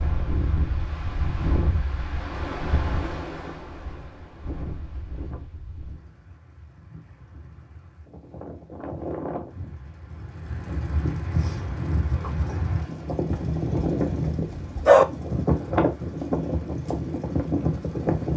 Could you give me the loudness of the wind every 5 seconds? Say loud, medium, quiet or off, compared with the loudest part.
medium, quiet, loud, loud.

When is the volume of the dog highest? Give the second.
15 s.